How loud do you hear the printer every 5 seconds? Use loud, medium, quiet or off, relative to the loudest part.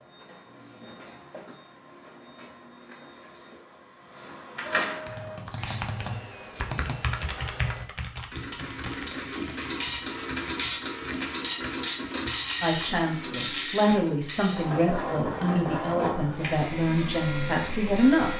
medium, medium, loud, loud.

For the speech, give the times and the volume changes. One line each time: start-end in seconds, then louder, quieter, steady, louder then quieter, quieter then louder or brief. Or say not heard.
12.6-18.3 steady.